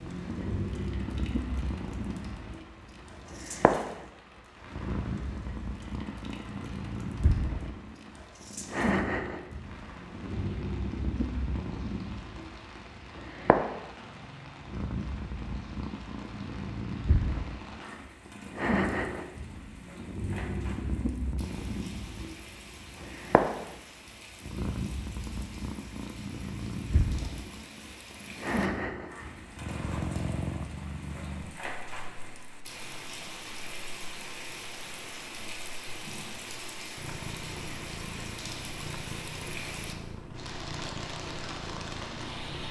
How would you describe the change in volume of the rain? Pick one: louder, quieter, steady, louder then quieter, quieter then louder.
louder.